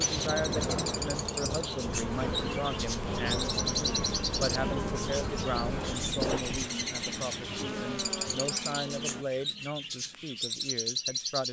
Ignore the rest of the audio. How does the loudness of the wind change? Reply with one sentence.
The volume of the wind stays about the same.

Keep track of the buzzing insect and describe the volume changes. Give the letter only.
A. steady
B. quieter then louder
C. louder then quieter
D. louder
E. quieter
A.